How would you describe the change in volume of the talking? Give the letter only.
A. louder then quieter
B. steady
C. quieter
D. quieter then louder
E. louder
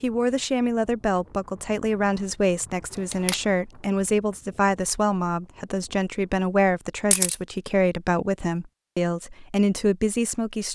B.